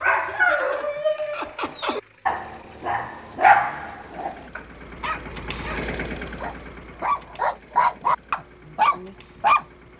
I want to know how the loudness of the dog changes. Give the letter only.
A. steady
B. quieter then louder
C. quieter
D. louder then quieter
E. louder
B.